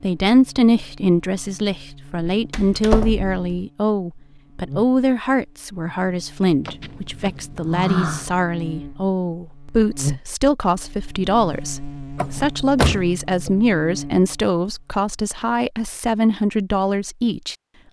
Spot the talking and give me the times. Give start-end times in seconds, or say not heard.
0.0-17.6.